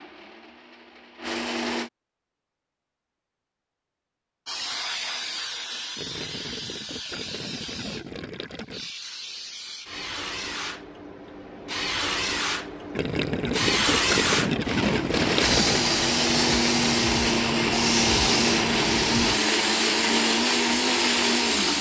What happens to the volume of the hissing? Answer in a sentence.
The loudness of the hissing goes up.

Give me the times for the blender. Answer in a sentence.
You can hear the blender from 0.0 to 1.9 s and from 14.7 to 21.7 s.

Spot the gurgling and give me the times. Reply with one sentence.
You can hear the gurgling from 6.0 to 8.9 s and from 12.9 to 15.8 s.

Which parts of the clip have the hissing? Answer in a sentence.
You can hear the hissing from 4.5 to 21.7 s.